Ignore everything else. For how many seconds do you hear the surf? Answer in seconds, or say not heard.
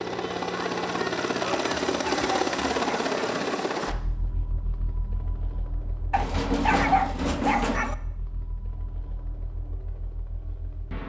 not heard.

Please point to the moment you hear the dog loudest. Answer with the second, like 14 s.
7 s.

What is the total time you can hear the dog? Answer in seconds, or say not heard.
3 s.